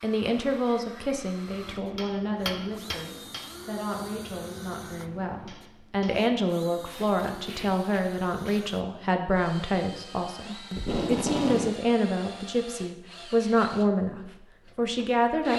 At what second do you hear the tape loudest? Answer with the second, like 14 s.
11 s.